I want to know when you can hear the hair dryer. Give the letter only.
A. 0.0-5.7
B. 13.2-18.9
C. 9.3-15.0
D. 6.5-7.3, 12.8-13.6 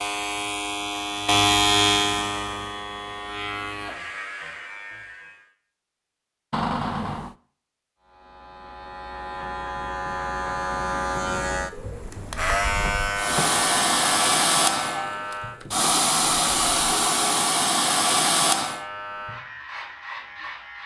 B.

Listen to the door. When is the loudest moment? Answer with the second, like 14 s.
7 s.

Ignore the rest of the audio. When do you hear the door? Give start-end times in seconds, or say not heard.
6.5-7.3, 12.8-13.6.